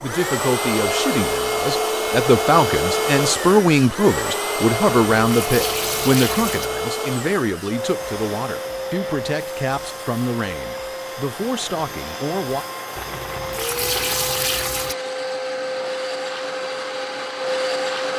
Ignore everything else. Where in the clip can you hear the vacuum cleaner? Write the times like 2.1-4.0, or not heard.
0.0-18.1.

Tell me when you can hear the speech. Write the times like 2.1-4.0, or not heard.
0.0-12.7.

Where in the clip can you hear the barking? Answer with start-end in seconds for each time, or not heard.
not heard.